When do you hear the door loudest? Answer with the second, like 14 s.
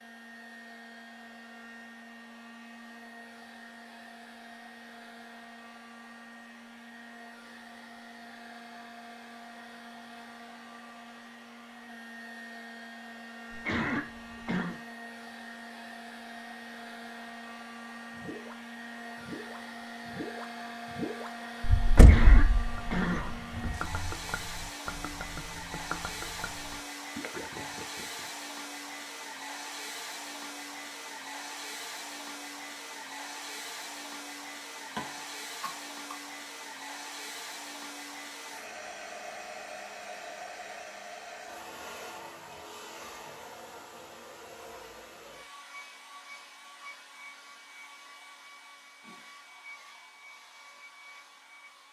22 s.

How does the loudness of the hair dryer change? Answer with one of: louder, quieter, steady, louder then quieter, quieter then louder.
louder then quieter.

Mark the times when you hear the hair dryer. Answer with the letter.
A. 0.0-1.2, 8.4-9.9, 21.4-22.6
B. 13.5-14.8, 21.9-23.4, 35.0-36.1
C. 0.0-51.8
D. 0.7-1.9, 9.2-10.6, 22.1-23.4
C.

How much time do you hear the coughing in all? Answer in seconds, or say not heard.
4 s.